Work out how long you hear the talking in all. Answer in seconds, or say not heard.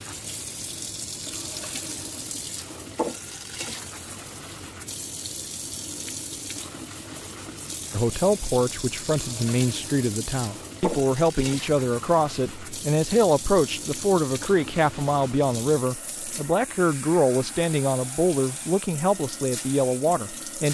13 s.